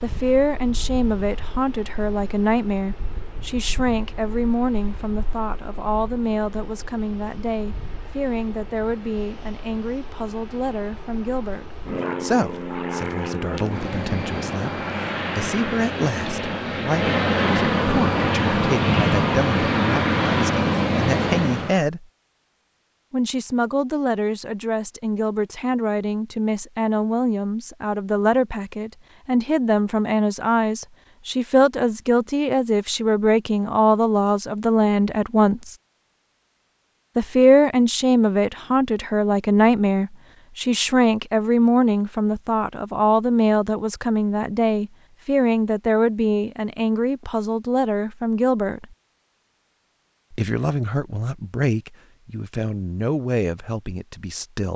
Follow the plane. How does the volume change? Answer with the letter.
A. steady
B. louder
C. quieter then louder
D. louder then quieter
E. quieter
B.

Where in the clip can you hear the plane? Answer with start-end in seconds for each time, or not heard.
0.0-21.8.